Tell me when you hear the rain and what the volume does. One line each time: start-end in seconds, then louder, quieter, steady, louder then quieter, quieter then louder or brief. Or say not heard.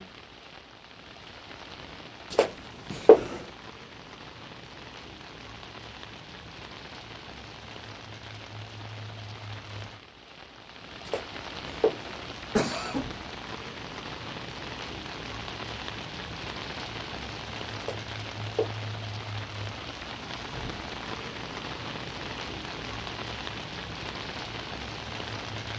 0.0-25.7 louder.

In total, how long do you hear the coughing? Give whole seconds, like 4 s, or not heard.
4 s.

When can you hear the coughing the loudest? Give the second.
3 s.